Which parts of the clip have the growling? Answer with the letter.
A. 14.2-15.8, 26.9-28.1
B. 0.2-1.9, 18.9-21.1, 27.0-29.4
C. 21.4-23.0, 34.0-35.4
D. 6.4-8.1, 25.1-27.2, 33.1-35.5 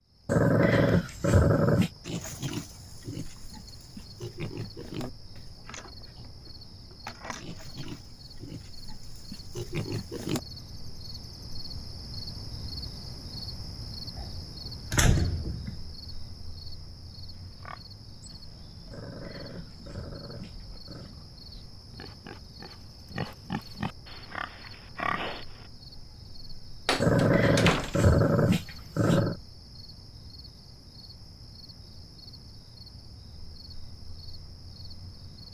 B.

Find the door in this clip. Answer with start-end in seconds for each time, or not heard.
14.2-15.8, 26.9-28.1.